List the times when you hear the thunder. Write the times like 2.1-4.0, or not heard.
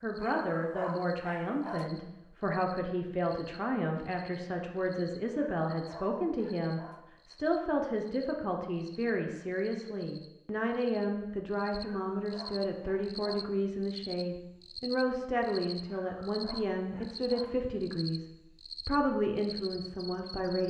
not heard.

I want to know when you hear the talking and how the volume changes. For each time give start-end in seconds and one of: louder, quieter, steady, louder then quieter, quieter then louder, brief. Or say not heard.
0.0-20.6 steady.